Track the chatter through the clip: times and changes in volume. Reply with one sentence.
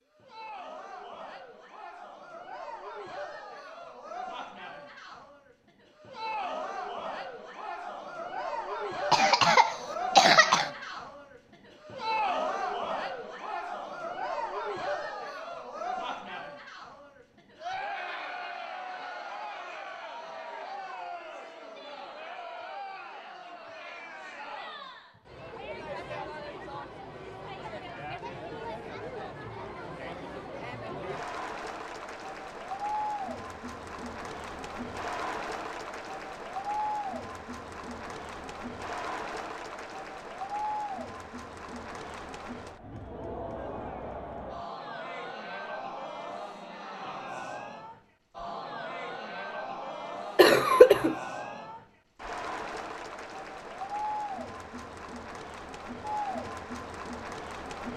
The chatter can be heard from 0.1 to 57.9 s, at a steady volume.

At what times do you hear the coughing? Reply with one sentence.
The coughing can be heard from 9.1 to 10.7 s and from 50.4 to 51.1 s.